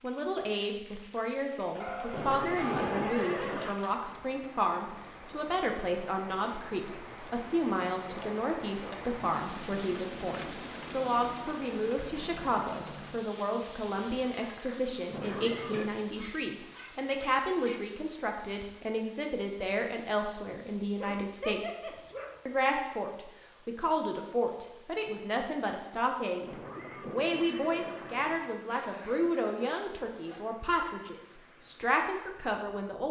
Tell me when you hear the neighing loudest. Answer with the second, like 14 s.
3 s.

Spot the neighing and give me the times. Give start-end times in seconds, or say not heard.
2.1-3.8, 15.1-15.9, 26.4-28.4.